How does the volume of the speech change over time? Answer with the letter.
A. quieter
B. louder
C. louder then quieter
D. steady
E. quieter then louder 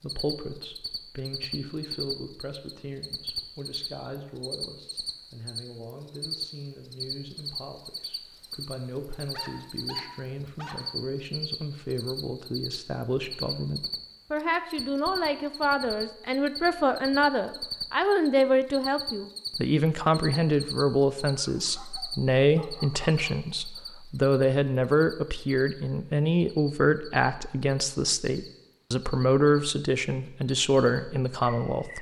B.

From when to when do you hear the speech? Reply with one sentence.
The speech can be heard from 0.0 to 31.9 s.